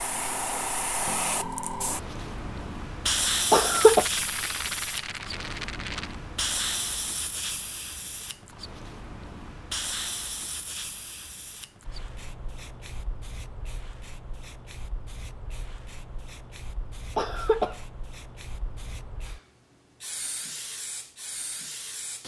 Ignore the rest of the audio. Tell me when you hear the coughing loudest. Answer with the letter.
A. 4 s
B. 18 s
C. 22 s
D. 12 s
A.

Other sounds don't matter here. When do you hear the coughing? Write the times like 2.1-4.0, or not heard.
3.5-4.0, 17.1-17.8.